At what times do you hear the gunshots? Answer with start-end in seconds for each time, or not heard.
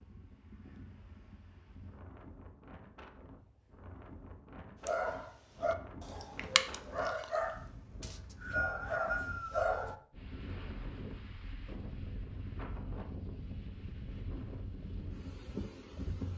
not heard.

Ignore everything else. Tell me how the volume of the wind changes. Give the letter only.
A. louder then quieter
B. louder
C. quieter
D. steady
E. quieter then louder
B.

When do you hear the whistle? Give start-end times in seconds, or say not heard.
8.0-9.9.